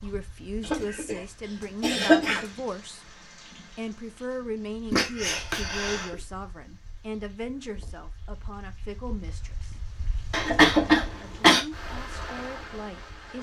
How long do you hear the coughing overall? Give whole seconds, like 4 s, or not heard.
4 s.